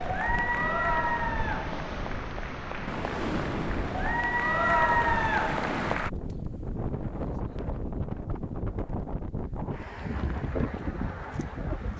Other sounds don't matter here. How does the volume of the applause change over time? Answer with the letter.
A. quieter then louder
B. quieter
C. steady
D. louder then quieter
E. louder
A.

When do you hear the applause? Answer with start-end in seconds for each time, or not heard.
0.0-6.1.